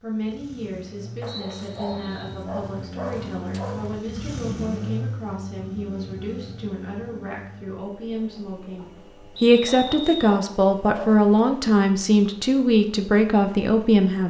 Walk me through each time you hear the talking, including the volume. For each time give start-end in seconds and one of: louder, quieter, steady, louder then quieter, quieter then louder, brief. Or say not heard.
0.0-14.2 louder.